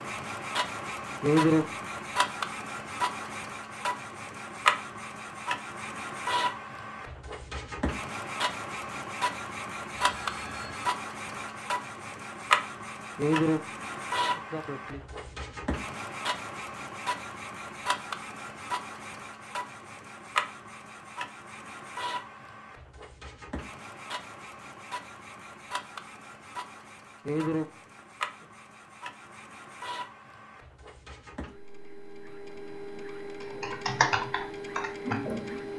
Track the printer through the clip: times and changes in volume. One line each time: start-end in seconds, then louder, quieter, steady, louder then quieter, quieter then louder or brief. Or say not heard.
0.0-35.7 quieter.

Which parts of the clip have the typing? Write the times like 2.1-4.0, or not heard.
33.4-35.6.